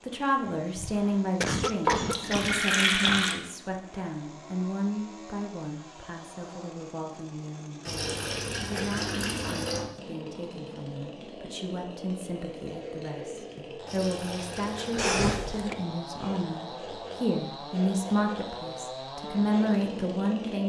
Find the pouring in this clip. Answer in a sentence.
You can hear the pouring from 1.9 to 3.4 s, from 7.8 to 9.8 s and from 13.8 to 15.2 s.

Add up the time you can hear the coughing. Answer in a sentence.
The coughing can be heard for 3 seconds in total.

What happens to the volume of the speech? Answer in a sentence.
The volume of the speech goes down, then up.